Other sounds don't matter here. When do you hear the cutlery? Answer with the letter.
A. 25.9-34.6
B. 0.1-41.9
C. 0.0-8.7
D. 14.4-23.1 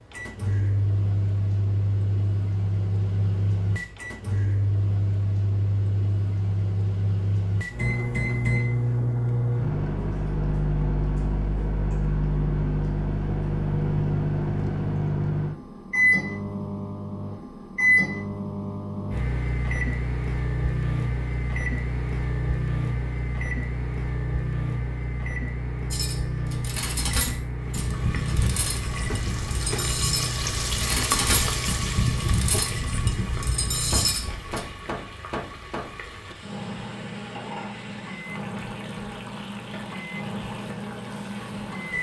A.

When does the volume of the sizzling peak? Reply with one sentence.
The volume of the sizzling peaks at 31 seconds.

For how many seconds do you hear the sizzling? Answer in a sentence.
You can hear the sizzling for 14 seconds altogether.